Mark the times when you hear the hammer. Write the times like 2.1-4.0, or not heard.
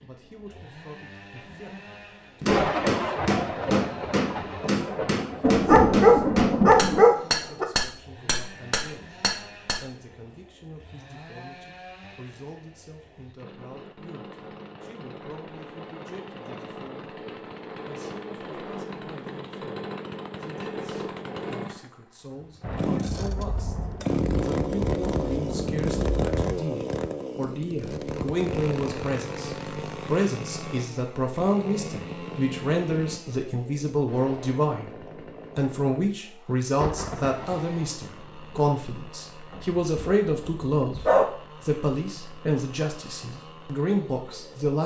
2.4-9.8.